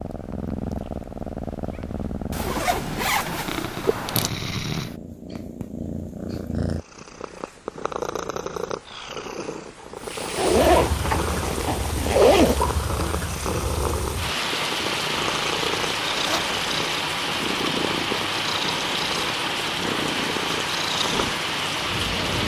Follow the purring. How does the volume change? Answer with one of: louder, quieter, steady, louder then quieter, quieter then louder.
steady.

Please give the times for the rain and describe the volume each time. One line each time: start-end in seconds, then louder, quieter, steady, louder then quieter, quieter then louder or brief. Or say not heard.
9.9-22.4 steady.